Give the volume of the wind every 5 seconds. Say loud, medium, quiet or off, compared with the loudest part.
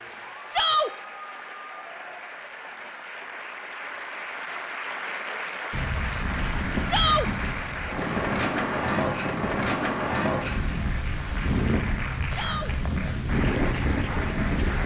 off, loud, loud.